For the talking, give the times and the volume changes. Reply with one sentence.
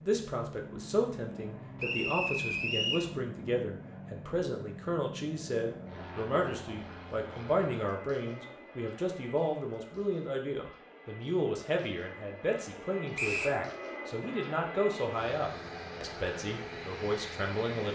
The talking can be heard from 0.0 to 17.9 s, at a steady volume.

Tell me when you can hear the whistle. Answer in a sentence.
The whistle can be heard from 1.8 to 3.0 s and from 13.2 to 13.6 s.